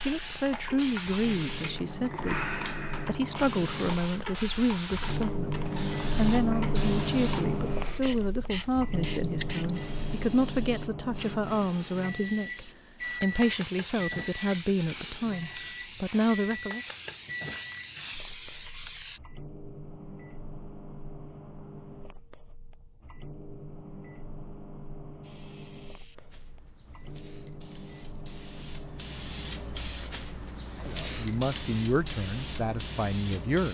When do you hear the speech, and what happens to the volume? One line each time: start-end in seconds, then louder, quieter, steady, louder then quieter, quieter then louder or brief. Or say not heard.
0.0-16.9 steady
30.8-33.6 brief.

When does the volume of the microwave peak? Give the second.
7 s.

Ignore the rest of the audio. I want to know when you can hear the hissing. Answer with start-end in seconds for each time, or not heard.
0.0-19.2, 25.2-33.6.